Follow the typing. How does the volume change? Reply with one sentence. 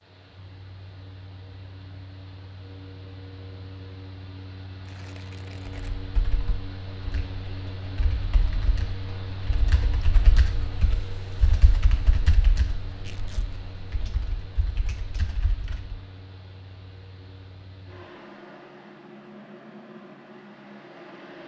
The loudness of the typing goes up, then down.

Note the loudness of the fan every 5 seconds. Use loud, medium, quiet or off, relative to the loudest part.
medium, loud, loud, medium, loud.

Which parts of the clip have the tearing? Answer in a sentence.
You can hear the tearing from 4.8 to 6.0 s and from 12.9 to 13.6 s.